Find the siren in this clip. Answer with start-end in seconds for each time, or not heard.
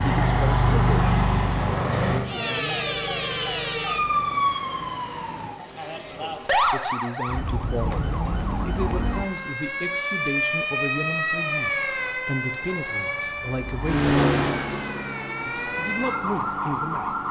2.2-17.2.